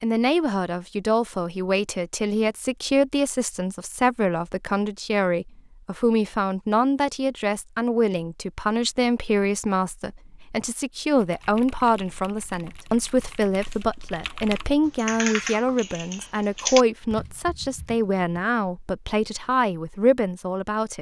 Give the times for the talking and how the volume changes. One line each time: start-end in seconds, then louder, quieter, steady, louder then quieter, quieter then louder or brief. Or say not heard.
0.0-20.9 steady.